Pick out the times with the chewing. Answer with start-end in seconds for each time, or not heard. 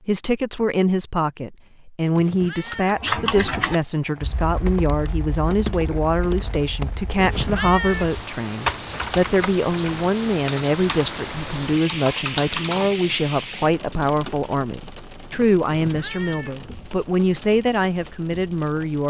not heard.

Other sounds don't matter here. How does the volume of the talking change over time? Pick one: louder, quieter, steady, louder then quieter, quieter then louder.
steady.